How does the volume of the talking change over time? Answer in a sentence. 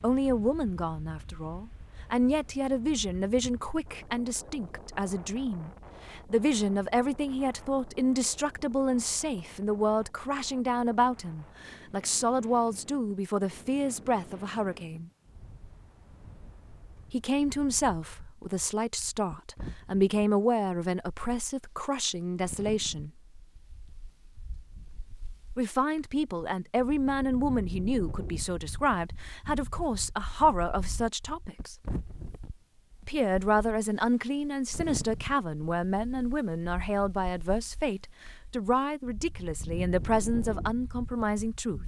The loudness of the talking stays about the same.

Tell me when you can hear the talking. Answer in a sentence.
You can hear the talking from 0.0 to 15.1 s, from 17.1 to 23.1 s, from 25.6 to 31.8 s and from 33.0 to 41.8 s.